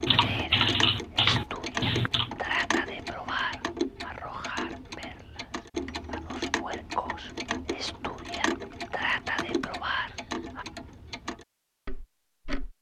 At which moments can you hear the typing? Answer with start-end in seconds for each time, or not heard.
0.1-2.3, 8.6-10.4.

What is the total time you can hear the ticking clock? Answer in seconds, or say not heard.
13 s.